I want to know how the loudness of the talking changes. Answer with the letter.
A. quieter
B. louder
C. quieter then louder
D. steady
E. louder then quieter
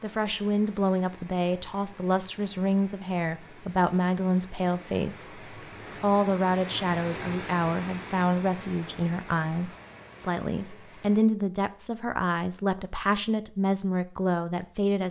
D.